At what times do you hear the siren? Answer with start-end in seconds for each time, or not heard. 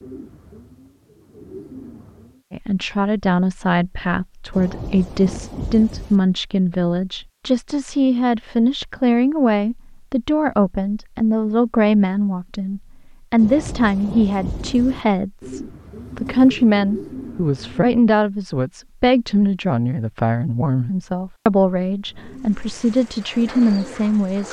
not heard.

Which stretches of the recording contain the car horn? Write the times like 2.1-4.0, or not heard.
not heard.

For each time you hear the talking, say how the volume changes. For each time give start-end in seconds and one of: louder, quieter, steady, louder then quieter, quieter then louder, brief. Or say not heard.
2.5-24.4 steady.